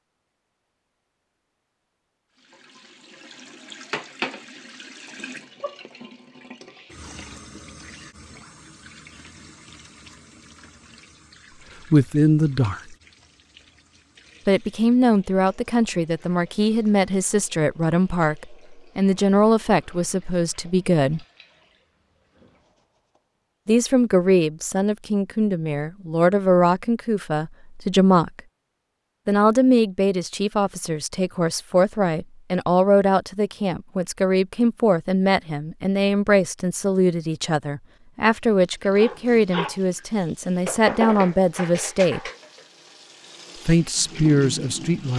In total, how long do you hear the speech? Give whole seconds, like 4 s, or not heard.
27 s.